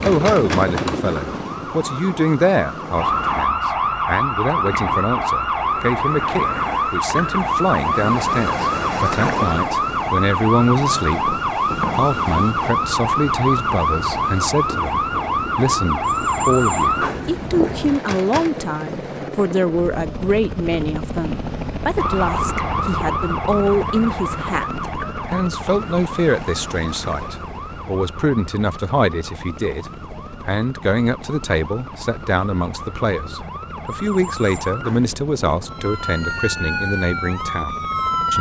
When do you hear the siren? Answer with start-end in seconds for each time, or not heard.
0.0-18.5, 21.9-38.3.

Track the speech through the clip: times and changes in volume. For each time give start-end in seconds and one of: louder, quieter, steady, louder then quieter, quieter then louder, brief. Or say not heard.
0.1-38.3 steady.